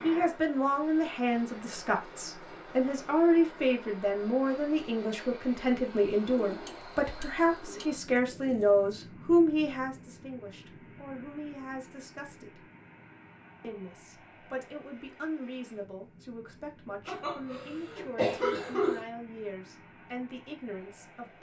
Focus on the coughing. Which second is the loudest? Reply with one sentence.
The loudest moment of the coughing is at 18 seconds.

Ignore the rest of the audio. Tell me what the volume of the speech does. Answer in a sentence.
The loudness of the speech goes down.